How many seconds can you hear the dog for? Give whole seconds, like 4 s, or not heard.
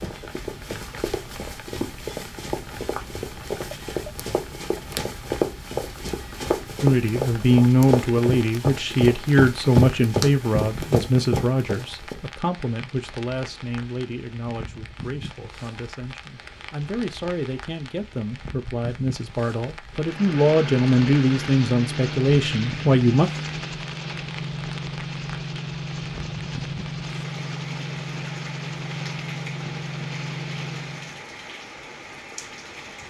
not heard.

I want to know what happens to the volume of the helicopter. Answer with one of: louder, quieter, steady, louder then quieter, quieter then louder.
steady.